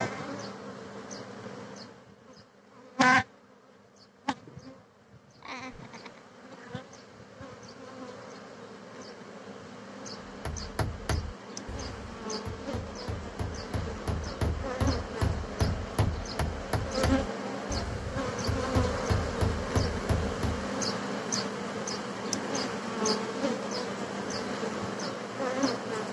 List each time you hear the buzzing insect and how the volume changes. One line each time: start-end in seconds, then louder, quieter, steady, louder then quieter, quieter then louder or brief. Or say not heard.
0.0-26.0 quieter then louder.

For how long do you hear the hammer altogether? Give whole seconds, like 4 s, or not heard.
10 s.